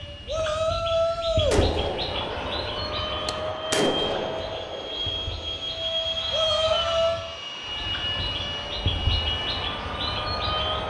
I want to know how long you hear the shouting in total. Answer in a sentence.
You can hear the shouting for 2 seconds altogether.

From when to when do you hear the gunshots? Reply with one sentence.
You can hear the gunshots from 1.5 to 5.8 s.